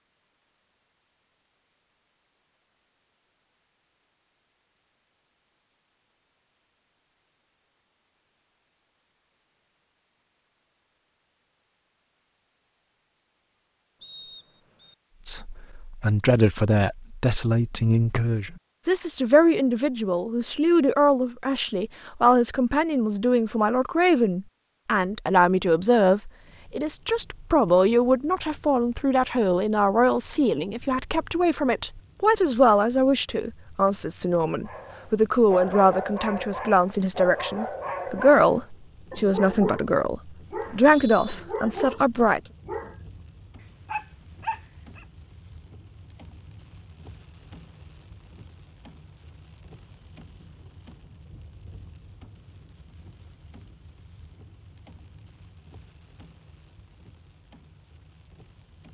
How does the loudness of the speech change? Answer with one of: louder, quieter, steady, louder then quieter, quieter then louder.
steady.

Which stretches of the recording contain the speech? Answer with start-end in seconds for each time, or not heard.
15.2-42.4.